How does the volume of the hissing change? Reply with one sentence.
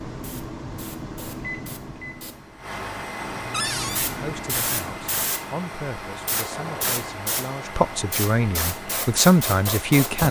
The loudness of the hissing goes up.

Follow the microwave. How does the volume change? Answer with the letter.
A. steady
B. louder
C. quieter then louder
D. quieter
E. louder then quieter
C.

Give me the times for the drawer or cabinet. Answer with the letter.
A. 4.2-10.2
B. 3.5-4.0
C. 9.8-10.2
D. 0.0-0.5
B.